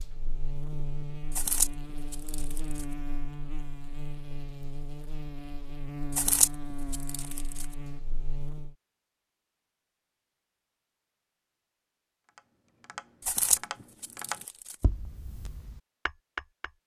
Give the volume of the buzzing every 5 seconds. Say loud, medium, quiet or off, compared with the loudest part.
loud, loud, off, off.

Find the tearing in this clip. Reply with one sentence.
You can hear the tearing from 1.4 to 2.9 s, from 6.2 to 7.7 s and from 13.2 to 14.8 s.